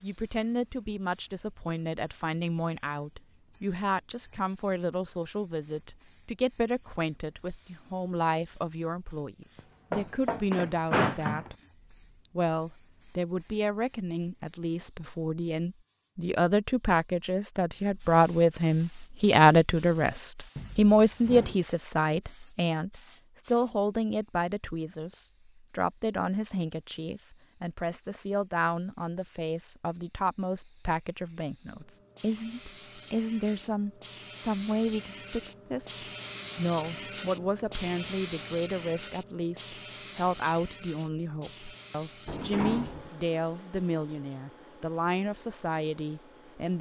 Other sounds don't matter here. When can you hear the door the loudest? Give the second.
11 s.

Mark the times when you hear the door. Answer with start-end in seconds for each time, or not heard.
9.6-11.5, 20.6-21.6, 42.2-43.1.